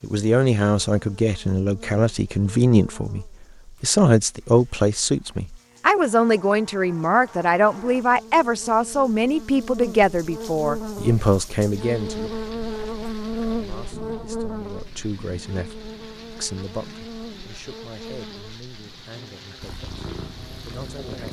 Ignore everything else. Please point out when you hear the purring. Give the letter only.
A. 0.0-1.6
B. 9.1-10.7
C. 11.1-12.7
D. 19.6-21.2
D.